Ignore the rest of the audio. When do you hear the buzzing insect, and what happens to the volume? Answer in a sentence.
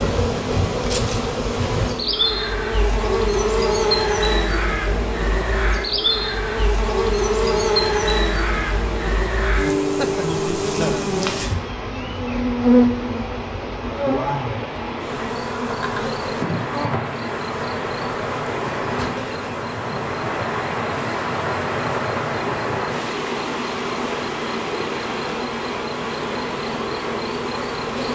The buzzing insect can be heard from 0.0 to 28.1 s, getting quieter.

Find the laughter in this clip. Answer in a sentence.
You can hear the laughter from 9.8 to 11.1 s.